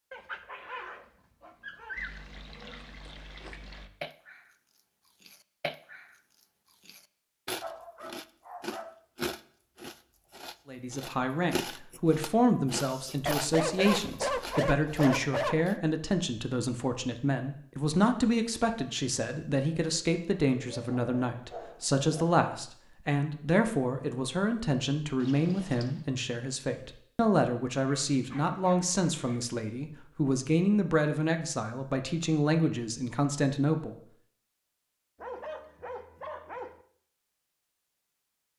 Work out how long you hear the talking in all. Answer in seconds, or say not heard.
23 s.